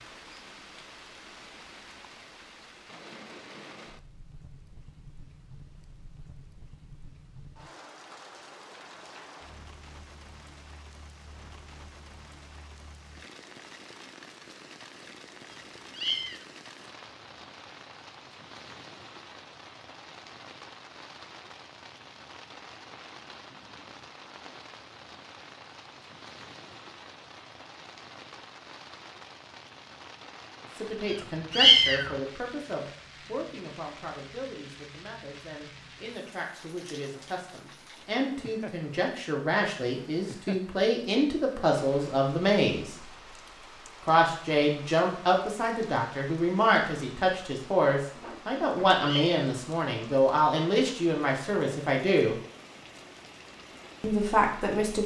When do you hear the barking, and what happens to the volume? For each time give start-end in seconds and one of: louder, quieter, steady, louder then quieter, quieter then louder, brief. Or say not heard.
not heard.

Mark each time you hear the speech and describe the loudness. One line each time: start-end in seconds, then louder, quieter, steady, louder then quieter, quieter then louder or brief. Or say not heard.
30.8-43.0 quieter then louder
44.0-52.4 steady
54.0-55.0 brief.